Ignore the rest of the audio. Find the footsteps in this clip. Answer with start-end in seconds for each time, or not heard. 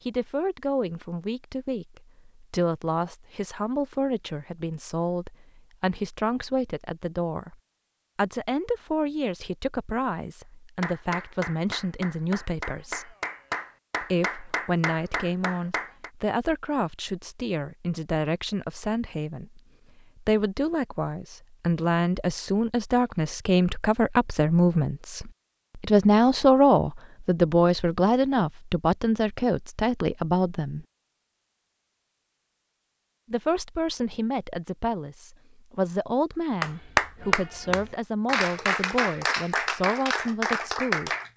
not heard.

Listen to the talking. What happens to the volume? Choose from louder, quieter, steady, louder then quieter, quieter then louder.
louder then quieter.